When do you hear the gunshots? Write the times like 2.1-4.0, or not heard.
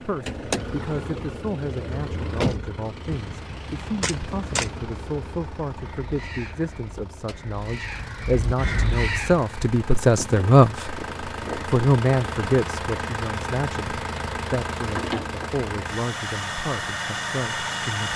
3.0-4.8.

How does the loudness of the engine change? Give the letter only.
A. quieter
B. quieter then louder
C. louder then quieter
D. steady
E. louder
B.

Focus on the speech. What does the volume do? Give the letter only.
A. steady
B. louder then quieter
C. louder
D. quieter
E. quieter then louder
B.